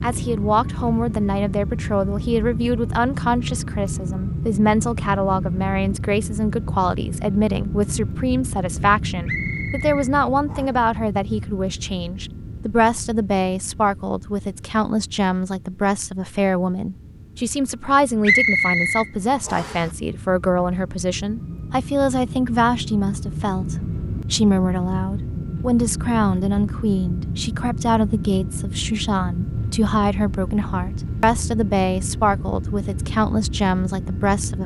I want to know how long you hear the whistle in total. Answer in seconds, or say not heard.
3 s.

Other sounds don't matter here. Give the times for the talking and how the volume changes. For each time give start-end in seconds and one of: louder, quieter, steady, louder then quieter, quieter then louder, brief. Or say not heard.
0.0-34.6 steady.